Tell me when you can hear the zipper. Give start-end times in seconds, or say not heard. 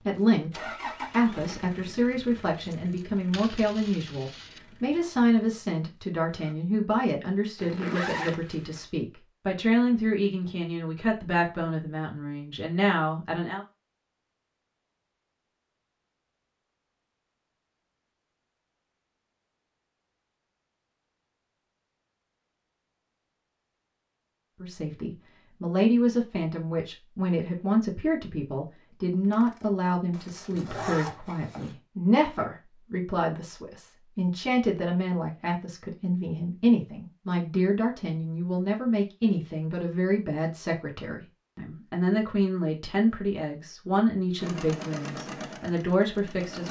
7.5-8.8, 30.1-31.8.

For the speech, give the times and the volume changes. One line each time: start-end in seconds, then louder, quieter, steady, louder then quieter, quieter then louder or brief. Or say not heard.
0.1-13.7 steady
24.6-46.6 steady.